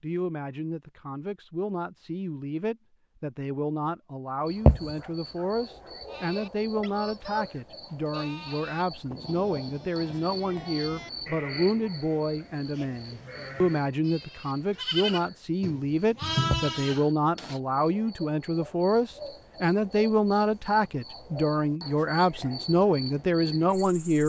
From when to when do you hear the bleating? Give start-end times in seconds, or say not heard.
6.0-17.6.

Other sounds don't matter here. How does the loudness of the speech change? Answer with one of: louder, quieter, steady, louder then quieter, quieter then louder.
louder.